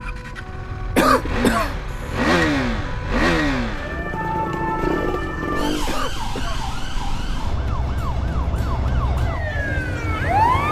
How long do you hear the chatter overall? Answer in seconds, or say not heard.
not heard.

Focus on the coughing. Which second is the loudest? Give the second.
1 s.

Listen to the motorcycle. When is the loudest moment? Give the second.
3 s.